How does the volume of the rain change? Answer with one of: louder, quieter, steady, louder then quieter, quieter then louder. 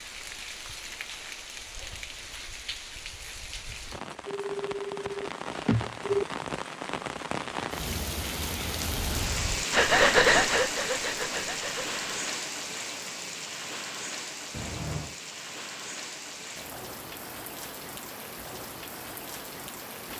louder then quieter.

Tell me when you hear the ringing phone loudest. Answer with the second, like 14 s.
6 s.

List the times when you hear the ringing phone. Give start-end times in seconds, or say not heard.
4.2-6.2, 14.5-15.2.